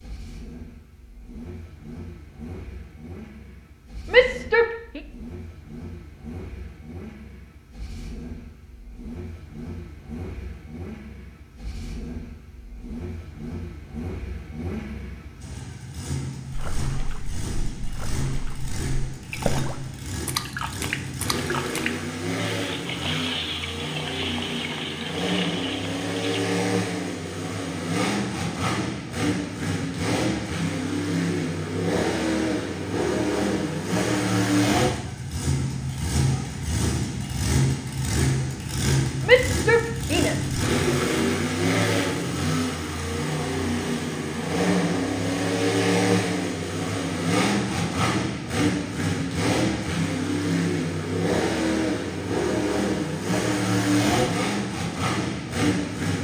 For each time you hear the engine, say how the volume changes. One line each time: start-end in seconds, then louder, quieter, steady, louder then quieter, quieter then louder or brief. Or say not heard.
0.0-56.1 louder.